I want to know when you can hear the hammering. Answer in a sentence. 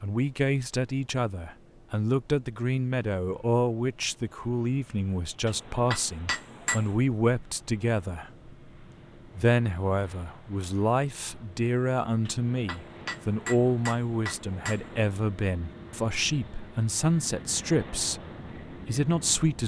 The hammering can be heard from 5.5 to 7.0 s and from 12.2 to 15.0 s.